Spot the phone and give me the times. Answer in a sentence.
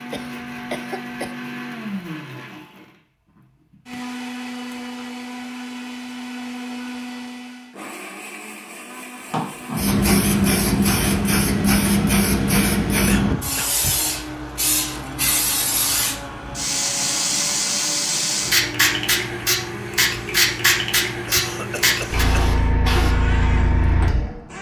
You can't hear the phone here.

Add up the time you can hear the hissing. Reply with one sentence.
You can hear the hissing for 15 seconds altogether.